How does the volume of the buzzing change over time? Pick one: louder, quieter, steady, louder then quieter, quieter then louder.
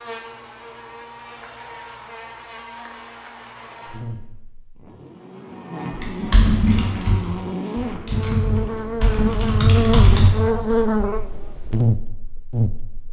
louder.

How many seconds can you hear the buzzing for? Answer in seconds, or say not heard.
13 s.